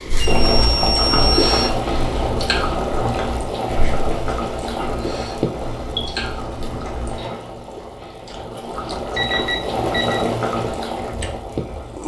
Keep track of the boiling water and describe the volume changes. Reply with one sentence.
The loudness of the boiling water goes down, then up.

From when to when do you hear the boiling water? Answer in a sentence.
The boiling water can be heard from 0.0 to 12.0 s.